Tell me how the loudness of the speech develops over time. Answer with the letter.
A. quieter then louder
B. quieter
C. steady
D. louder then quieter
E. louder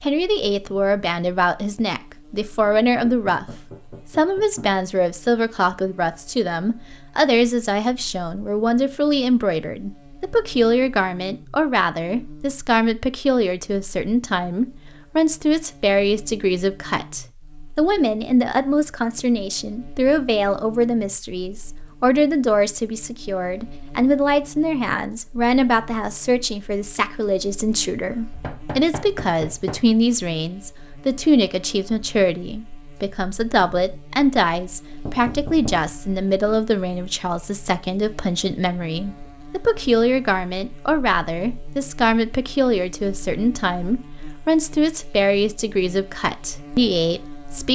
C.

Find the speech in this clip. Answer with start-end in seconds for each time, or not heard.
0.0-3.5, 4.1-47.6.